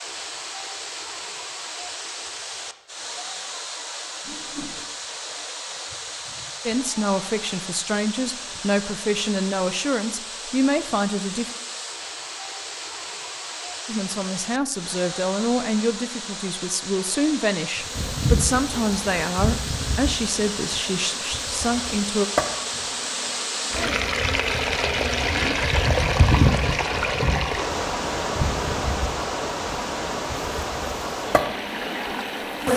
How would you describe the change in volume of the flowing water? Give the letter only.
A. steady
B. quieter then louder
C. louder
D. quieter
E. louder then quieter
C.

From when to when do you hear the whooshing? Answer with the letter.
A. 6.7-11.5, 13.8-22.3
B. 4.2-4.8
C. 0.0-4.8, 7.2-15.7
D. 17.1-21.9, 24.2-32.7
B.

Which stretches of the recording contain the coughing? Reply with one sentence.
You can't hear the coughing here.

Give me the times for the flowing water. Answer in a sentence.
You can hear the flowing water from 0.0 to 32.7 s.